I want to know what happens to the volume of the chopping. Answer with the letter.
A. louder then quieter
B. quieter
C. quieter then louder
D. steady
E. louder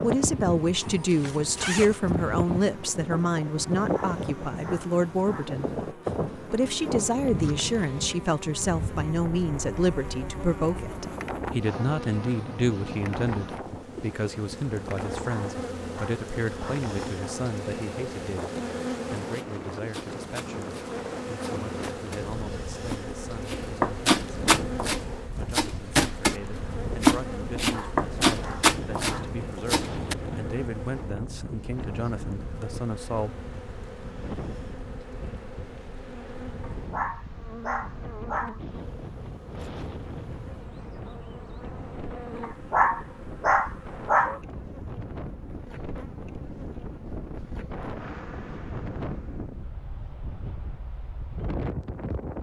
E.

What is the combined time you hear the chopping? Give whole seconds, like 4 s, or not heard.
11 s.